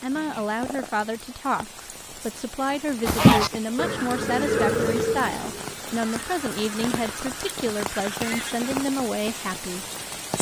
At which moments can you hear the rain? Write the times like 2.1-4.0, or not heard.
0.0-10.3.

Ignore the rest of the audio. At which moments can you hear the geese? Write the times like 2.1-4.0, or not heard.
3.0-8.7.